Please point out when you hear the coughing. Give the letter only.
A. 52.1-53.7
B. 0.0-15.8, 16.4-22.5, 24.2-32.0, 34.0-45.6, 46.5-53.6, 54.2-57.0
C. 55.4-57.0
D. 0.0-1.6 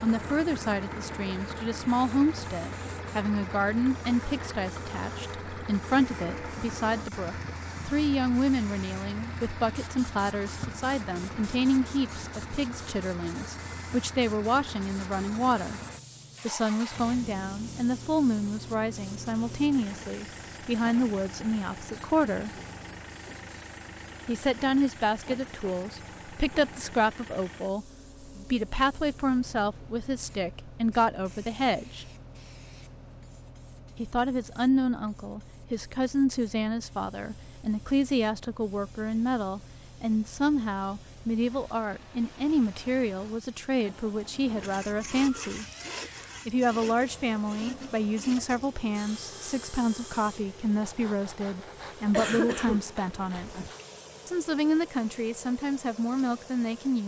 A.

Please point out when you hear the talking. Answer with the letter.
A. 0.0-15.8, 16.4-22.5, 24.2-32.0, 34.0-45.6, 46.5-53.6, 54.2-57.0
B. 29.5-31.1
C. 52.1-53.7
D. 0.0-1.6
A.